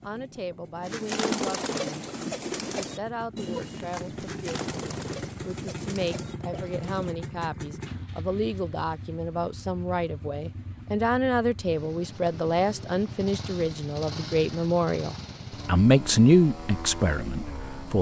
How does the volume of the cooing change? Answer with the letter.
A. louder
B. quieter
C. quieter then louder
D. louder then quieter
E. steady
B.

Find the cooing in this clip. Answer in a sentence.
You can hear the cooing from 0.8 to 7.2 s.